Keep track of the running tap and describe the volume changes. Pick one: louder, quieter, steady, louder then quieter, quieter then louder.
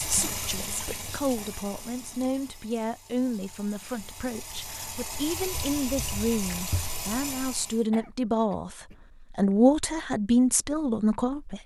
quieter then louder.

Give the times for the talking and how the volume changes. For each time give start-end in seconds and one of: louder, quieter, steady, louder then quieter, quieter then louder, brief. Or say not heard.
0.0-11.6 louder.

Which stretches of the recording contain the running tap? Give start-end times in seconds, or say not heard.
0.0-7.8.